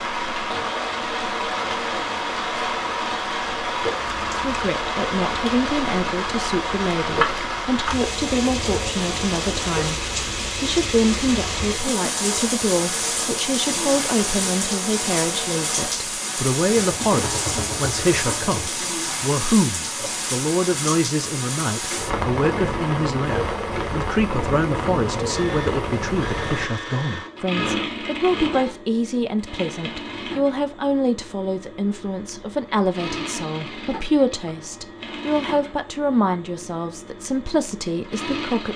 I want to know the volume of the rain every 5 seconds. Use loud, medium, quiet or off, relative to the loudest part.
loud, loud, loud, loud, loud, loud, off, off.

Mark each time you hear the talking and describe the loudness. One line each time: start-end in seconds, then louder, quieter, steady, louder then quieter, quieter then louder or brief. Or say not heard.
4.5-38.7 steady.